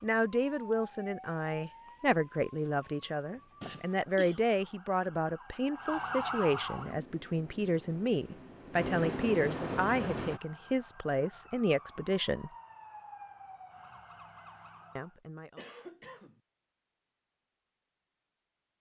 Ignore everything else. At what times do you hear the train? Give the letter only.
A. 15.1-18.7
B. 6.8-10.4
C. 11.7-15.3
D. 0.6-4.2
B.